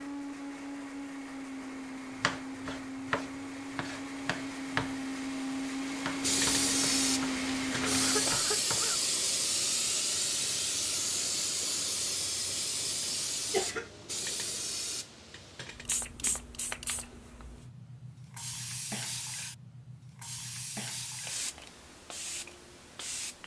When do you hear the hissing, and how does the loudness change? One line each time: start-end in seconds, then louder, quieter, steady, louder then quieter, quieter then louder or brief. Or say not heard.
6.2-23.4 quieter.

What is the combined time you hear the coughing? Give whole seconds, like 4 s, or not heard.
2 s.